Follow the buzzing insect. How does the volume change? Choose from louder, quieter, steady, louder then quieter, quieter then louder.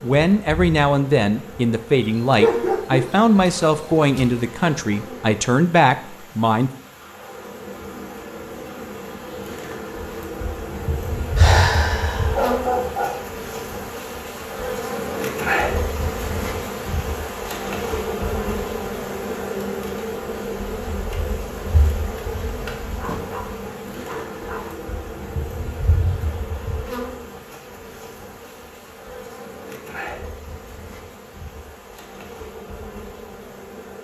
louder then quieter.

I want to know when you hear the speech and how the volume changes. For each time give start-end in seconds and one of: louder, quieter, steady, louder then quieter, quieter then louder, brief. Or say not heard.
0.0-6.7 steady.